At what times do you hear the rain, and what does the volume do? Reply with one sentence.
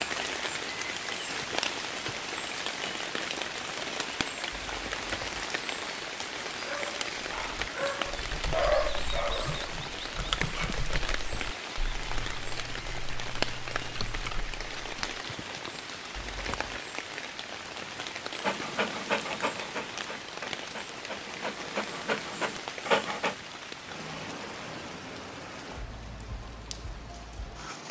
You can hear the rain from 0.0 to 27.8 s, getting quieter.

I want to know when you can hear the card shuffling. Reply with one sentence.
The card shuffling can be heard from 4.5 to 5.5 s and from 16.1 to 16.8 s.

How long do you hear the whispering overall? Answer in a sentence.
The whispering can't be heard in this clip.